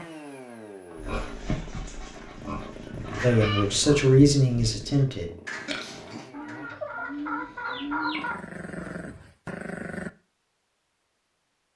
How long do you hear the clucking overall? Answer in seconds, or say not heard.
5 s.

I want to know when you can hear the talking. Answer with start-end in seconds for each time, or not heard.
3.2-5.3.